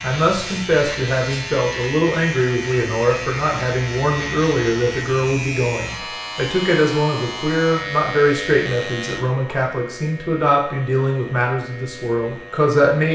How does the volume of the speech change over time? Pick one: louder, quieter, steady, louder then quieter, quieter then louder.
steady.